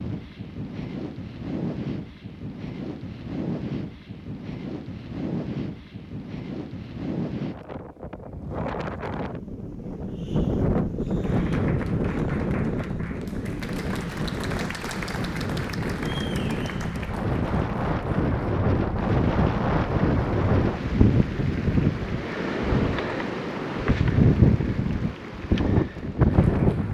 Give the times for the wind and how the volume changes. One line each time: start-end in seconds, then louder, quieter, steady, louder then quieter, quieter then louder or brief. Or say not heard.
0.0-26.8 louder.